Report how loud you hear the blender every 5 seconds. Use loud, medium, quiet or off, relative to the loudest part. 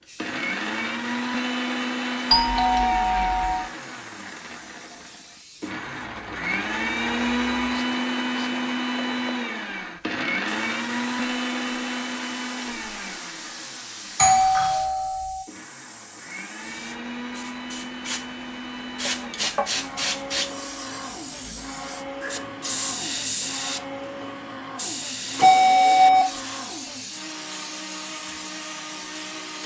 loud, loud, loud, medium, medium, medium.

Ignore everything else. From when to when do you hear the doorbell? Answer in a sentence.
You can hear the doorbell from 2.3 to 3.6 s, from 14.2 to 15.4 s and from 25.4 to 26.2 s.